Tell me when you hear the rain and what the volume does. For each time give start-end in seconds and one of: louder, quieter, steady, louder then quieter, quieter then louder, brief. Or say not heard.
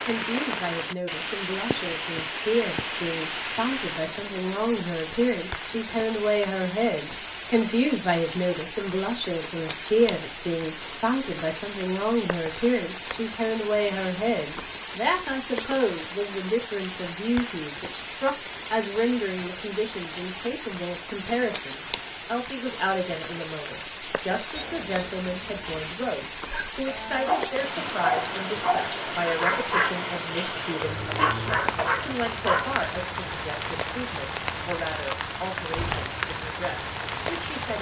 0.0-37.7 steady.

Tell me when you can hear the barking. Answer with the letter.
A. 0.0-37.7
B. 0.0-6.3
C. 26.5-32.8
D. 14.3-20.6
C.